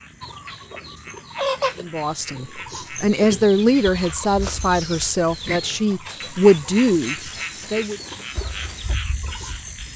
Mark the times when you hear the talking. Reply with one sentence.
The talking can be heard from 1.8 to 8.0 s.